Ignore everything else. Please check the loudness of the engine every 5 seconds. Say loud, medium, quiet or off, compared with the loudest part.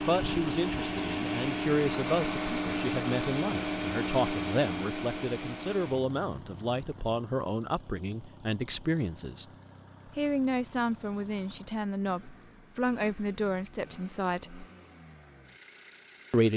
loud, quiet, quiet, quiet.